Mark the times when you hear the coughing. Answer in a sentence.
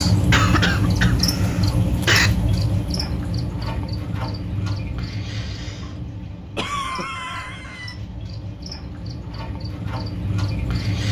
You can hear the coughing from 0.3 to 2.3 s and from 6.5 to 8.0 s.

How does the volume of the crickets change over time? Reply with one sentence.
The volume of the crickets goes down, then up.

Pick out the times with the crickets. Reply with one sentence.
You can hear the crickets from 0.0 to 11.0 s.